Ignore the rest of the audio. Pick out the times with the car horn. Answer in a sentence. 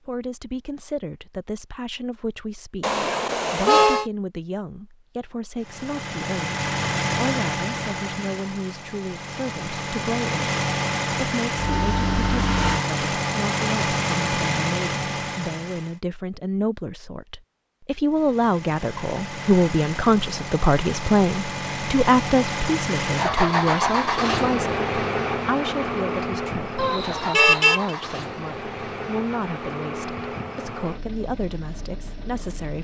The car horn can be heard from 2.8 to 4.1 s and from 26.8 to 27.9 s.